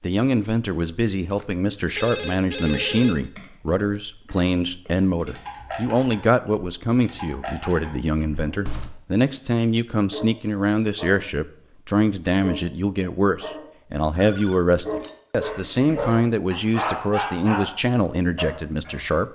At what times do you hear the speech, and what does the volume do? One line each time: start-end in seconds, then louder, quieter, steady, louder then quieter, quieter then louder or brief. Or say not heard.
0.0-19.2 steady.